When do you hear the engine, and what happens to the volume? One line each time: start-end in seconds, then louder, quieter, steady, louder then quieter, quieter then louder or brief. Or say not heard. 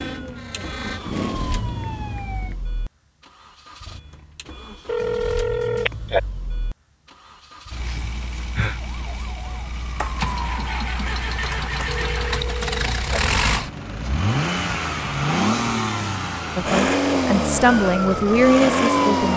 0.0-19.3 louder.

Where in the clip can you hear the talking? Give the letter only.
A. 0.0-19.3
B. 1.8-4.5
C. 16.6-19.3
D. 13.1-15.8
C.